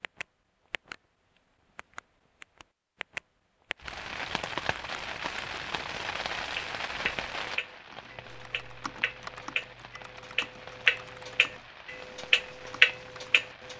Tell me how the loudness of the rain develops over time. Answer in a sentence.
The loudness of the rain goes down.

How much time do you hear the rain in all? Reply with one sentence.
You can hear the rain for 10 seconds altogether.